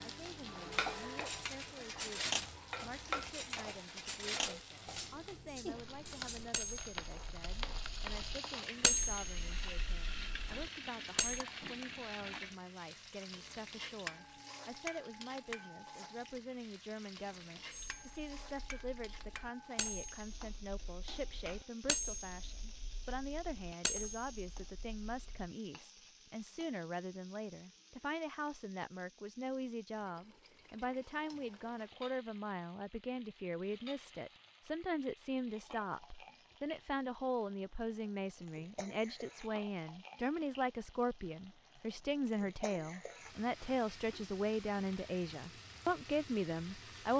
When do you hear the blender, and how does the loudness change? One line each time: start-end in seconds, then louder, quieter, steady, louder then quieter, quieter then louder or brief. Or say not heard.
not heard.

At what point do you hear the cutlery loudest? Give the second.
9 s.